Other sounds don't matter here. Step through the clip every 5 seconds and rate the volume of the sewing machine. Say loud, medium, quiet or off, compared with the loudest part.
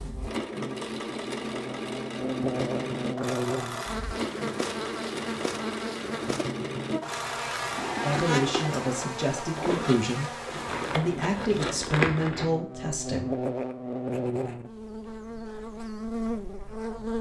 loud, loud, loud, off.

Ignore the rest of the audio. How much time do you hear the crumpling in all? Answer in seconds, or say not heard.
2 s.